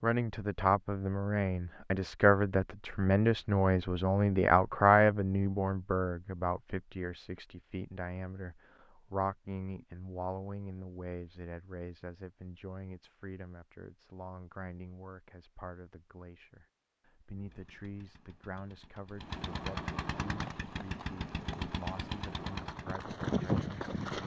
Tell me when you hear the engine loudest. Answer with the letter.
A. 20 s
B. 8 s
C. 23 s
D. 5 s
A.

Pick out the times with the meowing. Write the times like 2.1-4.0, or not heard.
not heard.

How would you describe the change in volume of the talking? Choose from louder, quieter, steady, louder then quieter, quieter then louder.
quieter.